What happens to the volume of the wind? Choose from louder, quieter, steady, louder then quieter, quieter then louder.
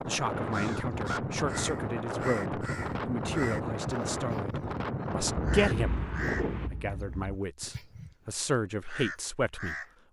steady.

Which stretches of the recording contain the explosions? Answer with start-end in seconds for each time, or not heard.
5.3-7.4.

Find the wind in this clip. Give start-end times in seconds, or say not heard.
0.0-6.7.